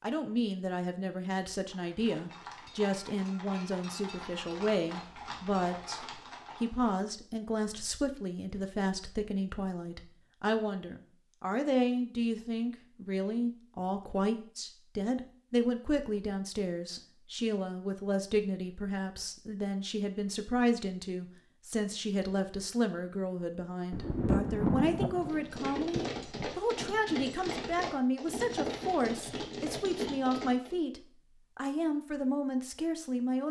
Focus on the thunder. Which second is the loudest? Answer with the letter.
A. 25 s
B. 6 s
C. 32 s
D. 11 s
A.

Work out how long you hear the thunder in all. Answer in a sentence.
You can hear the thunder for 3 seconds altogether.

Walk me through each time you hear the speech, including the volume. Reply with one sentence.
The speech can be heard from 0.0 to 33.4 s, at a steady volume.